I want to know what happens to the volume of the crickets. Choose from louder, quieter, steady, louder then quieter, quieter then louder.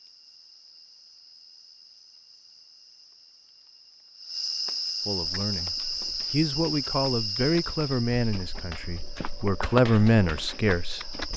louder then quieter.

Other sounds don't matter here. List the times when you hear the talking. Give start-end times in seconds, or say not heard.
5.0-11.0.